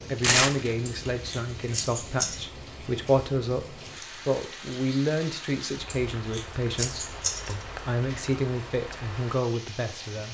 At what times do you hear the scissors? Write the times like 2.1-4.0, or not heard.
0.8-2.5, 5.9-7.8.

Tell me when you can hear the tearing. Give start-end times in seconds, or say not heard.
0.2-0.8, 7.9-8.3.